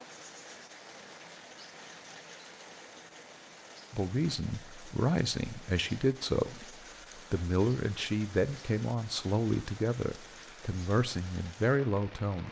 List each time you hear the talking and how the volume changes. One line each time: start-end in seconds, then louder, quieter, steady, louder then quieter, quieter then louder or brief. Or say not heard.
3.9-12.4 steady.